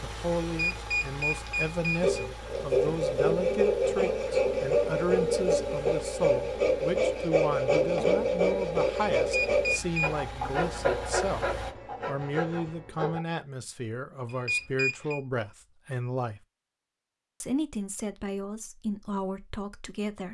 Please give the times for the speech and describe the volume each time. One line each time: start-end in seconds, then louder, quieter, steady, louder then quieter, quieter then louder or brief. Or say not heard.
0.0-16.4 steady
17.4-20.2 brief.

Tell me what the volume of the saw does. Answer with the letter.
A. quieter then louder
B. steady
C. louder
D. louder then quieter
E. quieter
E.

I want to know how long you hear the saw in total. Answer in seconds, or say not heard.
11 s.